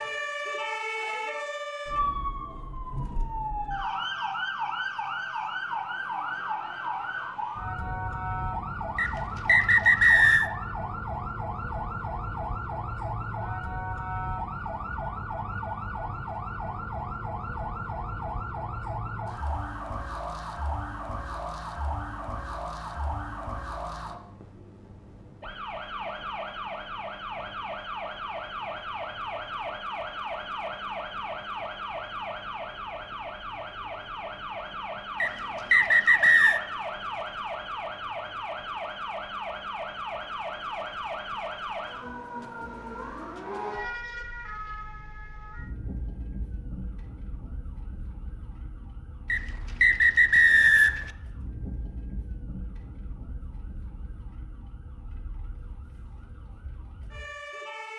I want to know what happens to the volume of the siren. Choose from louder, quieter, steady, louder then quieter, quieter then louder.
quieter.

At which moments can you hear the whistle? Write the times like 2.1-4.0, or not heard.
8.9-10.5, 35.2-36.6, 49.3-51.1.